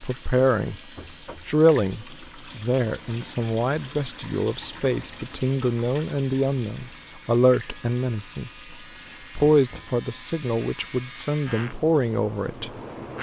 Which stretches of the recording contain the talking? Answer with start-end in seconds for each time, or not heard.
0.0-0.8, 1.4-8.5, 9.3-12.7.